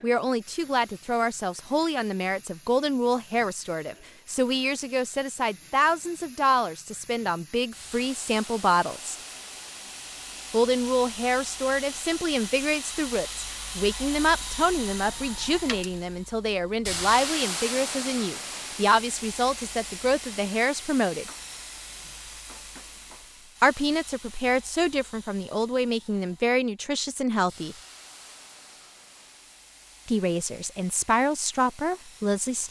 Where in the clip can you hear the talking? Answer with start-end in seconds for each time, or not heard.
0.0-9.2, 10.5-21.2, 23.6-27.8, 30.1-32.6.